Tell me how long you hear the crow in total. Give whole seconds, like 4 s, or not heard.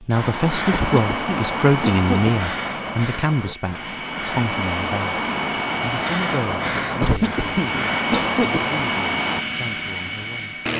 9 s.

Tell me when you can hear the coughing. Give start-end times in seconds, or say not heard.
0.7-2.4, 7.0-8.7.